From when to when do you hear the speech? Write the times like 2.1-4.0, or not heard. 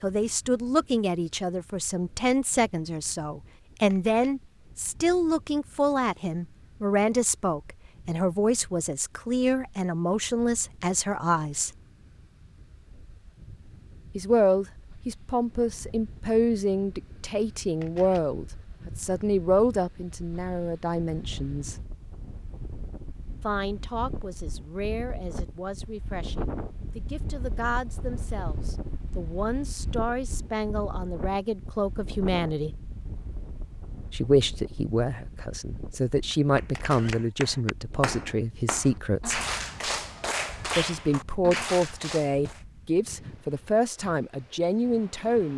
0.0-11.7, 14.2-21.8, 23.4-32.8, 34.1-39.4, 40.8-45.5.